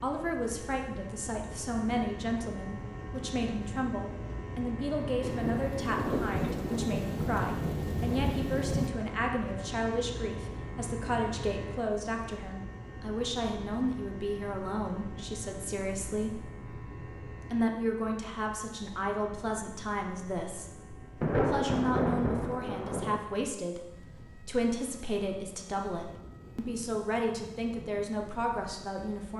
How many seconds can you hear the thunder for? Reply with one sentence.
The thunder can be heard for 6 seconds in total.